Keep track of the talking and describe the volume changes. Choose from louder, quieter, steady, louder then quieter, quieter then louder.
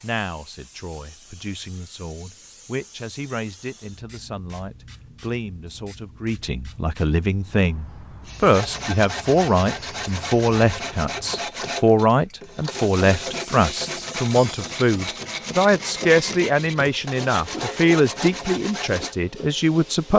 louder.